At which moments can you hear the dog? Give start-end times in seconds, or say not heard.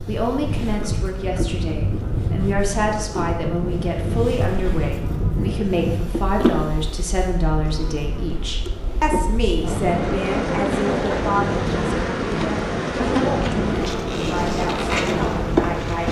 not heard.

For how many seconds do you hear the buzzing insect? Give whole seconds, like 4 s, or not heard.
16 s.